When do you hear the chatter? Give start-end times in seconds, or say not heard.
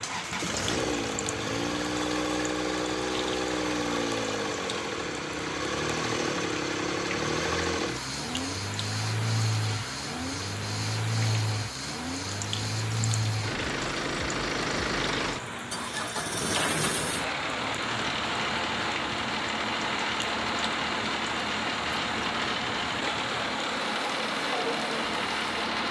not heard.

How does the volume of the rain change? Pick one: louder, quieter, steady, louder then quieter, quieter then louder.
steady.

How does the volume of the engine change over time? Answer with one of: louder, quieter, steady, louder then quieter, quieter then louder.
steady.